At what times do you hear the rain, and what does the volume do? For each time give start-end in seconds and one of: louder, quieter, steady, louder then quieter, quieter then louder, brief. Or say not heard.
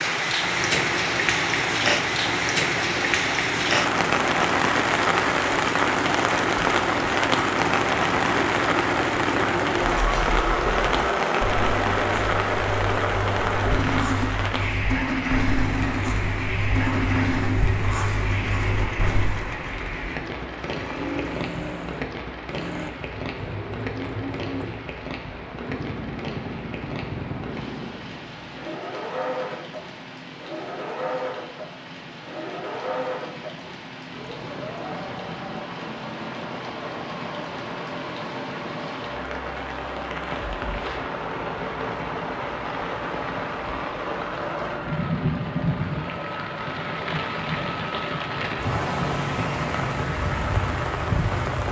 0.0-51.6 quieter then louder.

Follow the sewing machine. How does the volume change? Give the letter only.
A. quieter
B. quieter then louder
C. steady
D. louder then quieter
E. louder
A.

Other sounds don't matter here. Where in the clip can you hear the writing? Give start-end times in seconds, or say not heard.
9.9-19.4.